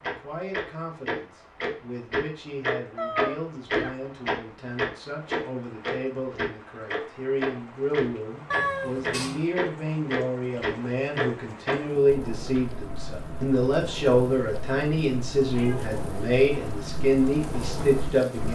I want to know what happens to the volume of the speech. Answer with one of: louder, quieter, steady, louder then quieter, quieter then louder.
louder.